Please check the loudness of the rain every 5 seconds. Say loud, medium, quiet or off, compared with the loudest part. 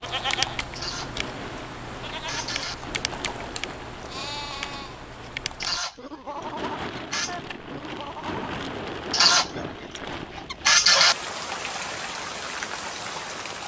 medium, loud, loud.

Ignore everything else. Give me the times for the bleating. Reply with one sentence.
You can hear the bleating from 0.0 to 8.4 s.